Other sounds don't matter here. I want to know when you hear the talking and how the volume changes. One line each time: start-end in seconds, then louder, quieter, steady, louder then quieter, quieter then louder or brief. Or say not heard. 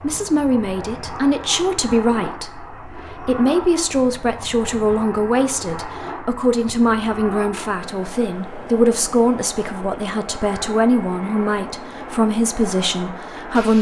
0.0-13.7 steady.